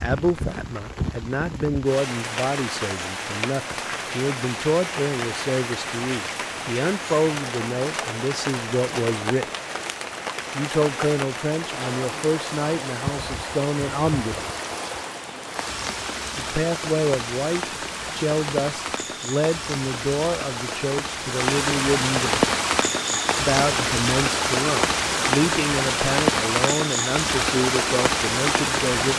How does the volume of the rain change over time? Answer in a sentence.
The loudness of the rain goes up.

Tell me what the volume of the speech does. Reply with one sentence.
The loudness of the speech stays about the same.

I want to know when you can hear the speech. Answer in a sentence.
The speech can be heard from 0.0 to 9.5 s, from 10.6 to 14.5 s, from 16.4 to 22.5 s and from 23.4 to 29.1 s.